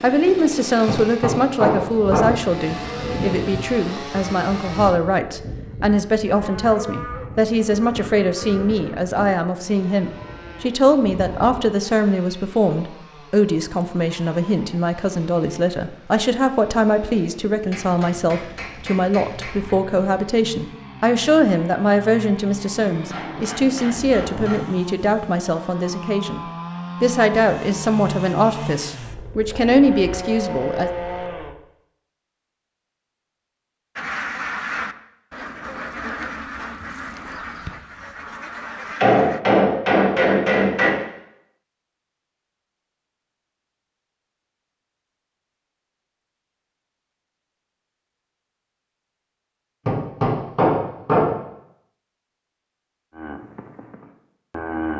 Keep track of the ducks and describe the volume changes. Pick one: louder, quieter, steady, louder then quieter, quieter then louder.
quieter.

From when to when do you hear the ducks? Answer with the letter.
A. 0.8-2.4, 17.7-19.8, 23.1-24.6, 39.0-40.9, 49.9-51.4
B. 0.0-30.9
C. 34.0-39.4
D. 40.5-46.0
C.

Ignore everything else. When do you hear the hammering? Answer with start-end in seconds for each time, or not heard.
0.8-2.4, 17.7-19.8, 23.1-24.6, 39.0-40.9, 49.9-51.4.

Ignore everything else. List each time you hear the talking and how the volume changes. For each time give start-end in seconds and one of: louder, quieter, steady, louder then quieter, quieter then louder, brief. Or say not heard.
0.0-30.9 steady.